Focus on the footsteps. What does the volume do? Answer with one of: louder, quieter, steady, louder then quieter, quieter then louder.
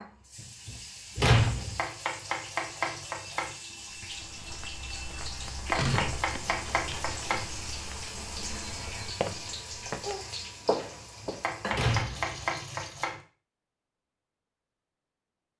louder.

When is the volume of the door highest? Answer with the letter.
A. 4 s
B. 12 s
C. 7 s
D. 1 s
D.